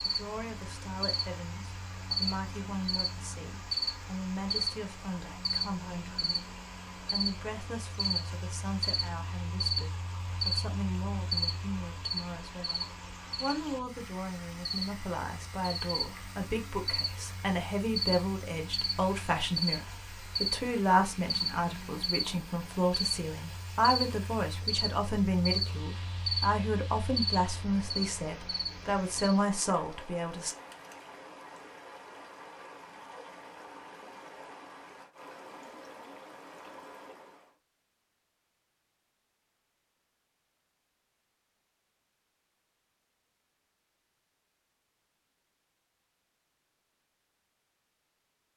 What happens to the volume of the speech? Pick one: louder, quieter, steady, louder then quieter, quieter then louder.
louder.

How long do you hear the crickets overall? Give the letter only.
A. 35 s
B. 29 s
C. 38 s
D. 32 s
B.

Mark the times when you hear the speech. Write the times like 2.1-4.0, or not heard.
0.1-30.6.